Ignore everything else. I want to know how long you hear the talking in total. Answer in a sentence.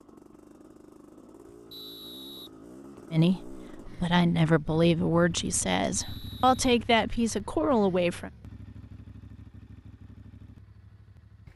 The talking can be heard for 5 seconds in total.